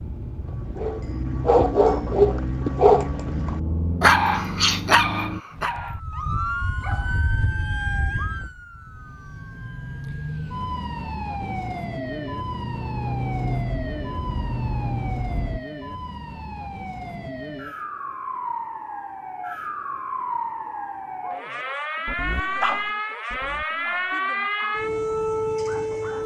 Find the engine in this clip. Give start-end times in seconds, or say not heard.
0.0-5.4, 11.3-15.6.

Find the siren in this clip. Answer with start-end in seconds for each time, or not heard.
5.5-26.2.